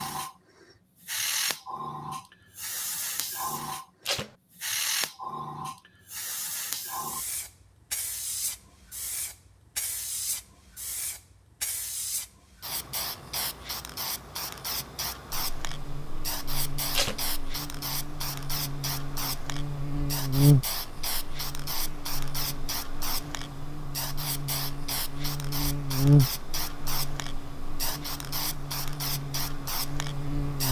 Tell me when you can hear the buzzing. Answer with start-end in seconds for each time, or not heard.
15.4-30.6.